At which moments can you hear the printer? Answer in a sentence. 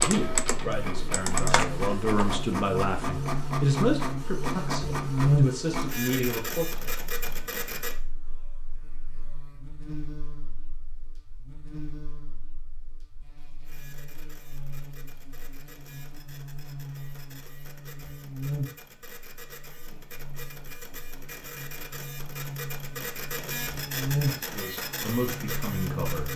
The printer can be heard from 0.0 to 8.0 s and from 13.7 to 26.3 s.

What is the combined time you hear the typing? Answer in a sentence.
You can hear the typing for 2 seconds altogether.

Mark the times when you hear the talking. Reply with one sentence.
You can hear the talking from 0.0 to 7.0 s and from 24.4 to 26.3 s.